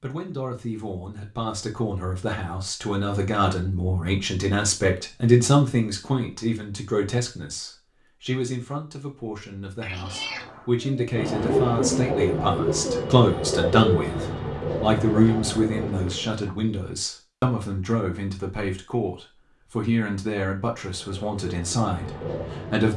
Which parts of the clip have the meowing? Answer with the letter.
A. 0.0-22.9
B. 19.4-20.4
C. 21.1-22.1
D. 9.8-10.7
D.